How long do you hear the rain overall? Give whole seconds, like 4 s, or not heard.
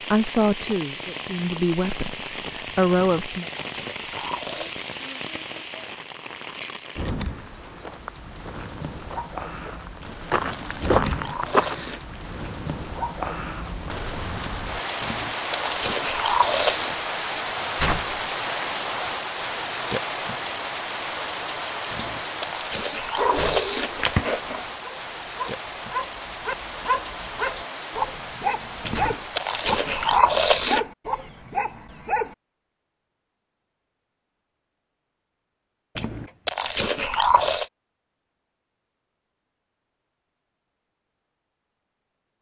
30 s.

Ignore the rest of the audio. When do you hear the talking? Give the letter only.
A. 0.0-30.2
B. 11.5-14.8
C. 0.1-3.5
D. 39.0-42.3
C.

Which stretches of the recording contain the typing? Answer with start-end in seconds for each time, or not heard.
not heard.